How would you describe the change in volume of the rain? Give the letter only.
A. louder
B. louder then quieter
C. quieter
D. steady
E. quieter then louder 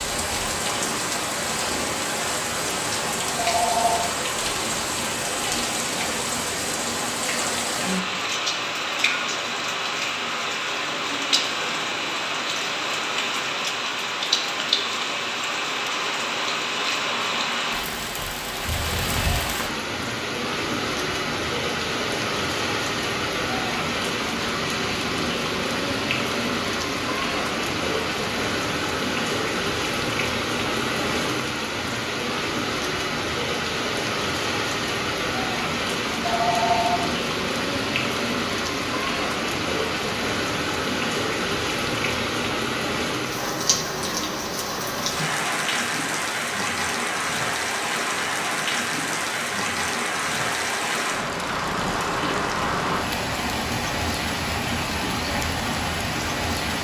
D.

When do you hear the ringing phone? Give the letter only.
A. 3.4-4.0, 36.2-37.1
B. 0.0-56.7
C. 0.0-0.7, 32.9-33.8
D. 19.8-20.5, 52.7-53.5
A.